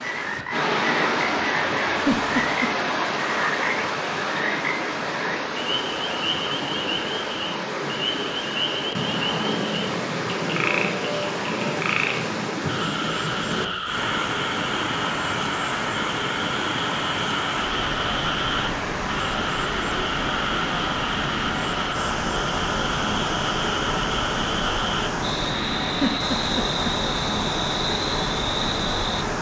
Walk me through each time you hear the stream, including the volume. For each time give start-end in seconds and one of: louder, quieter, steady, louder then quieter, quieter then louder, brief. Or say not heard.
0.0-29.3 steady.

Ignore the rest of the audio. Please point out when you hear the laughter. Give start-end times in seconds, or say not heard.
2.0-2.7, 26.0-26.9.